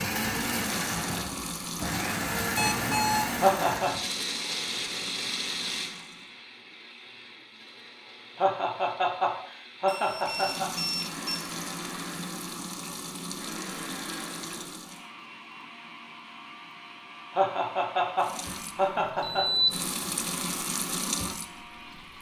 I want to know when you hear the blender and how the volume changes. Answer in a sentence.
You can hear the blender from 0.0 to 22.1 s, getting quieter.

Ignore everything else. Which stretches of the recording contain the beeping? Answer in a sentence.
The beeping can be heard from 2.5 to 3.4 s, from 9.8 to 11.2 s and from 19.2 to 19.8 s.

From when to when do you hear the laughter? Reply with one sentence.
The laughter can be heard from 3.4 to 3.9 s, from 8.3 to 10.7 s and from 17.3 to 19.4 s.